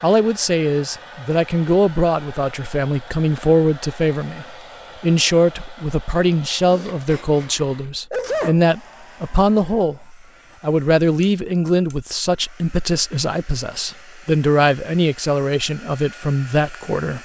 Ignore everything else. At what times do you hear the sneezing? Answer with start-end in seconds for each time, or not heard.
6.7-8.6.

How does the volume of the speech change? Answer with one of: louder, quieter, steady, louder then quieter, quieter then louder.
steady.